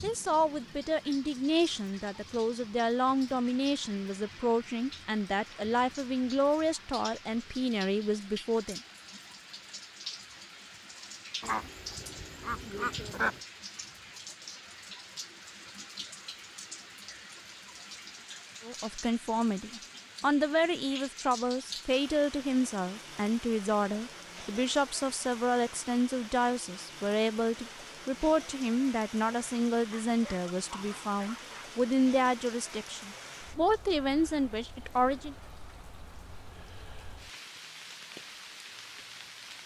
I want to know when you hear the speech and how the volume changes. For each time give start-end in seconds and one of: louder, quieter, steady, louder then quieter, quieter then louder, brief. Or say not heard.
0.0-8.8 steady
18.6-35.4 steady.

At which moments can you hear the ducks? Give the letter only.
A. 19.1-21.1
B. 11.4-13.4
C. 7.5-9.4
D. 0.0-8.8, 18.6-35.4
B.